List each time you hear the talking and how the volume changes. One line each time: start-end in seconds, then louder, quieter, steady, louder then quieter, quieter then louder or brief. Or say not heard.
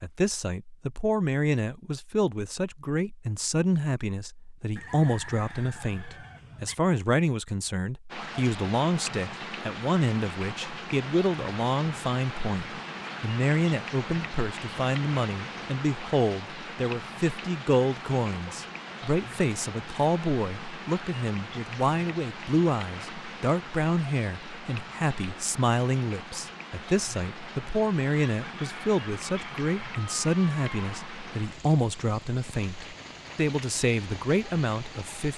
0.0-35.3 steady.